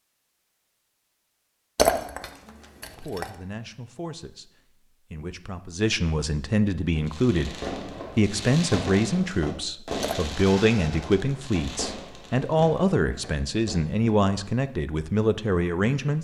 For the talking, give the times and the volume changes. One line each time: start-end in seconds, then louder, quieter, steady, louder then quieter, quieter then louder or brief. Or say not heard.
3.0-4.5 brief
5.1-16.1 steady.